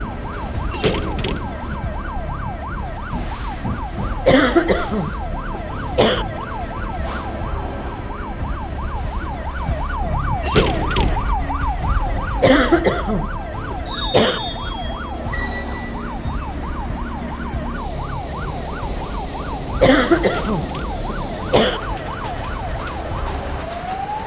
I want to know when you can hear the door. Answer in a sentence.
You can hear the door from 0.7 to 1.5 s, from 10.4 to 11.2 s and from 20.2 to 21.1 s.